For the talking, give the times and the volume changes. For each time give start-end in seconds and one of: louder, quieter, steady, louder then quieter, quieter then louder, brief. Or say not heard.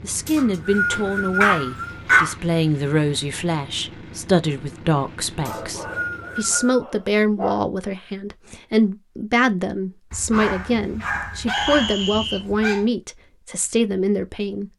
0.0-14.7 steady.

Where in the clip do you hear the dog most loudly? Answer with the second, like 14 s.
2 s.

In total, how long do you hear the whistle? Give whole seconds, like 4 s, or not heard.
4 s.